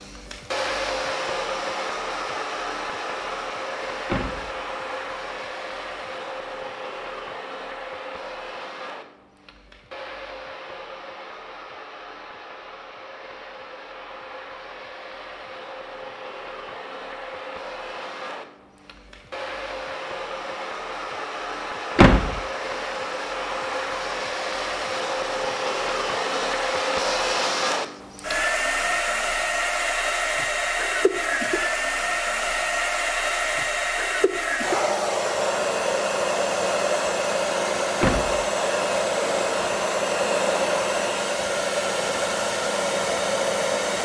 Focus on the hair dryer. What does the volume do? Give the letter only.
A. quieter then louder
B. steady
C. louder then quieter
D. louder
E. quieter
A.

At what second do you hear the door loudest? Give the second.
22 s.